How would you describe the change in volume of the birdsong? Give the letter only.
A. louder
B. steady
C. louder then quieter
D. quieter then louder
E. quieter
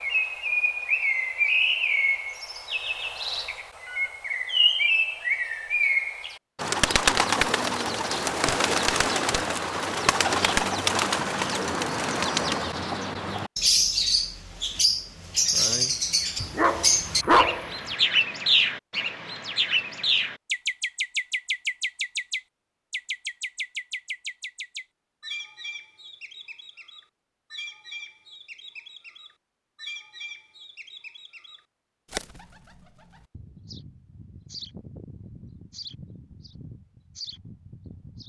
E.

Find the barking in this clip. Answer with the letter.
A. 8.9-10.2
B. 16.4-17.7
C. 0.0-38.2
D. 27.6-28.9
B.